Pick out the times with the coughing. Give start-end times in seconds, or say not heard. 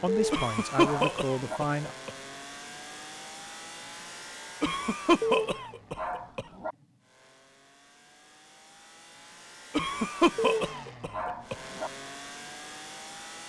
0.3-2.1, 4.6-6.5, 9.7-11.6.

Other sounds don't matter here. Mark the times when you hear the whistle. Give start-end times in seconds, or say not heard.
not heard.